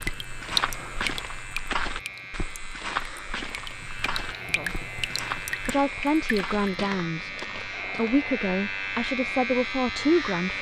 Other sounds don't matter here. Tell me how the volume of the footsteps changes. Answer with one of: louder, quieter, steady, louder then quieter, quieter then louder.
quieter.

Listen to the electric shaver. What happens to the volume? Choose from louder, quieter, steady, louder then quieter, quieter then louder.
louder.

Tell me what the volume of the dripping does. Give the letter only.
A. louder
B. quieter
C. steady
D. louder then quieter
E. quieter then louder
E.